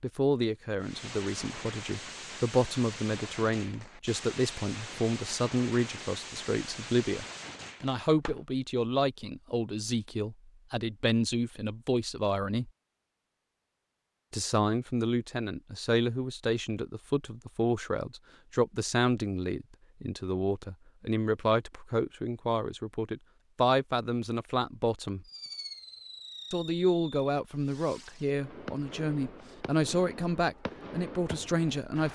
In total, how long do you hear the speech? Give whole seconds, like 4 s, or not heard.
29 s.